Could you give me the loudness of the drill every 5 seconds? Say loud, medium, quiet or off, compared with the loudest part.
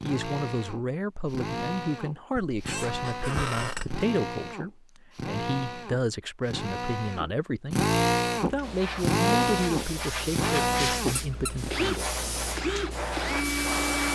medium, loud, loud.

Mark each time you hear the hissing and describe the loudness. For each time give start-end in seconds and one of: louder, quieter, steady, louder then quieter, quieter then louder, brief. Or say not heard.
8.3-14.0 steady.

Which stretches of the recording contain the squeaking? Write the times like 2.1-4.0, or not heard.
2.4-4.0, 11.2-11.6.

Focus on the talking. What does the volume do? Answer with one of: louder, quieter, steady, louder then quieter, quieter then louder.
steady.